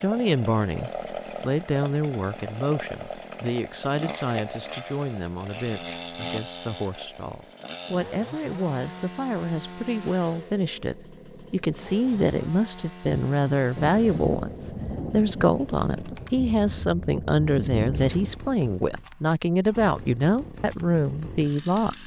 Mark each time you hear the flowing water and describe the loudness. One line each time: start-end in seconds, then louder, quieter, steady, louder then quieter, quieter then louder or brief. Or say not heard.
not heard.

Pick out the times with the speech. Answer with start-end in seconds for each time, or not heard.
0.0-22.0.